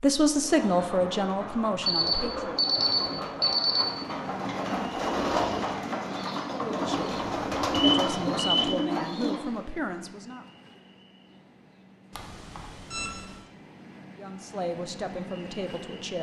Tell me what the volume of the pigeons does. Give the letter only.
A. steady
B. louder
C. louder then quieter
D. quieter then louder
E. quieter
B.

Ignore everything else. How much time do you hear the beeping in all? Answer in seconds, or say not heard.
4 s.